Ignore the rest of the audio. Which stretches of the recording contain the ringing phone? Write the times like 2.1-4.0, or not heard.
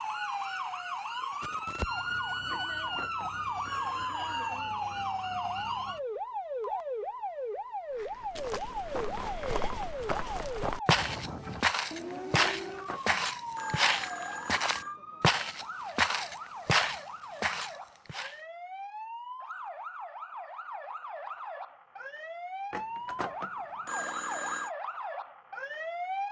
2.5-4.6, 12.4-14.9, 22.7-24.7.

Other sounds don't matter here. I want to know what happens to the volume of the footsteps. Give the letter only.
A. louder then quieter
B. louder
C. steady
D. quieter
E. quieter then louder
B.